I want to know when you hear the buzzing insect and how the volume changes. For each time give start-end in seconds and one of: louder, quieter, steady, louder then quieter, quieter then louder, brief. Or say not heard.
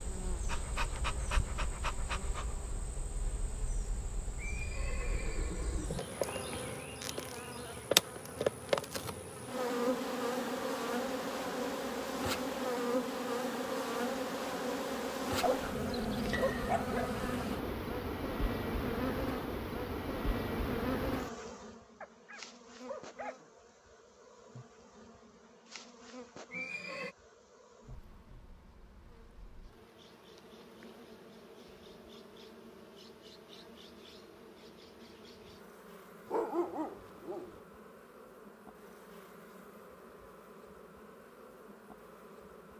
0.0-42.7 quieter.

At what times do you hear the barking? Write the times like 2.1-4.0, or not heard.
0.5-2.5, 15.4-17.1, 22.0-23.5, 36.2-37.6.